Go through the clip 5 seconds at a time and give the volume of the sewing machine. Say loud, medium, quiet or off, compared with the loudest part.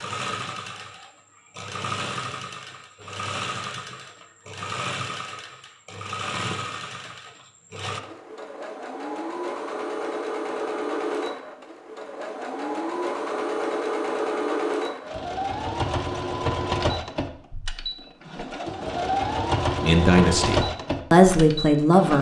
medium, medium, loud, loud, loud.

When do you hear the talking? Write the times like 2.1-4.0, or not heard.
19.8-22.1.